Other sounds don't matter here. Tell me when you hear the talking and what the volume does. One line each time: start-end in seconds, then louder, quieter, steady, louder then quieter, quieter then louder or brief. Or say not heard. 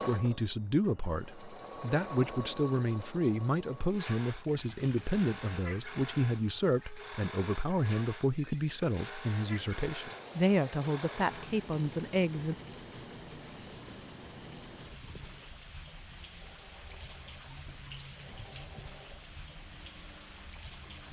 0.1-12.6 steady.